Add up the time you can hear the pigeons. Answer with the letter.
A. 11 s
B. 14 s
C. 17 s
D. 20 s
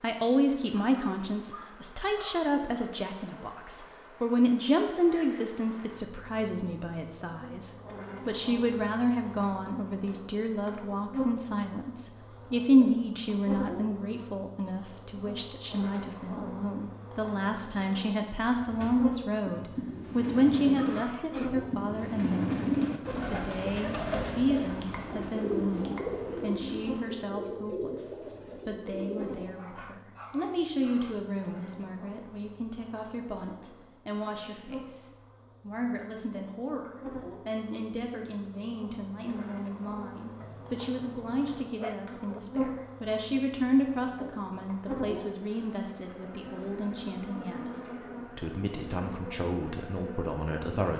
A.